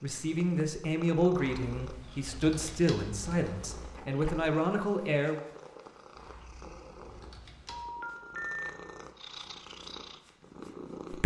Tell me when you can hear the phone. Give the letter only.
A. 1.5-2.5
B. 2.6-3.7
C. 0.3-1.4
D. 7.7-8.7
D.